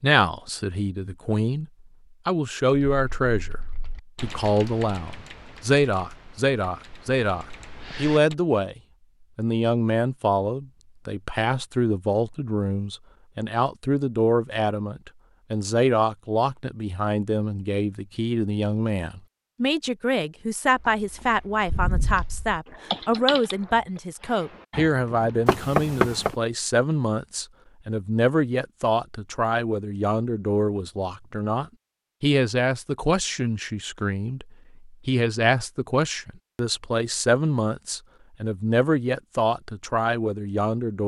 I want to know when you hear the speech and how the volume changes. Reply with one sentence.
The speech can be heard briefly from 0.0 to 1.6 s; and from 2.2 to 41.0 s, at a steady volume.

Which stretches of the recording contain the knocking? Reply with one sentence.
The knocking can be heard from 25.4 to 26.3 s.